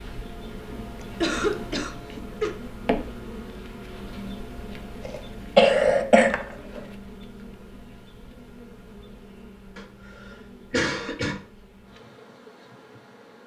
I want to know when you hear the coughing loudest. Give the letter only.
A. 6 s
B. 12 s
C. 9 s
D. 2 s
A.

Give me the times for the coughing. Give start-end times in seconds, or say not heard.
0.9-2.5, 5.0-6.8, 10.7-11.4.